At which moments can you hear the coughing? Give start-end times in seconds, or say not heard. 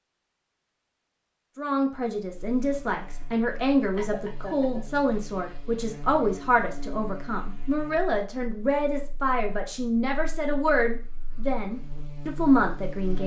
4.0-4.8.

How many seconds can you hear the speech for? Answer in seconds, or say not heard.
12 s.